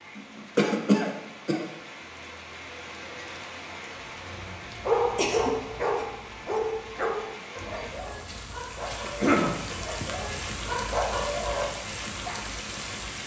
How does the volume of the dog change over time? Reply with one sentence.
The volume of the dog goes down, then up.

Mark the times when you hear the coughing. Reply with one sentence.
The coughing can be heard from 0.6 to 1.6 s, from 5.2 to 6.0 s and from 9.1 to 9.6 s.